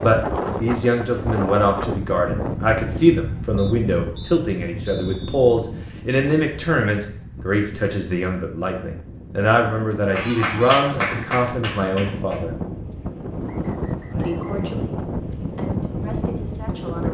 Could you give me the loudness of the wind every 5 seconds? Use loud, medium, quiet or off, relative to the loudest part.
loud, medium, loud, loud.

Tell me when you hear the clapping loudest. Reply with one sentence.
The volume of the clapping peaks at 11 seconds.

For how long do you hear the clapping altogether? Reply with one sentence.
You can hear the clapping for 2 seconds altogether.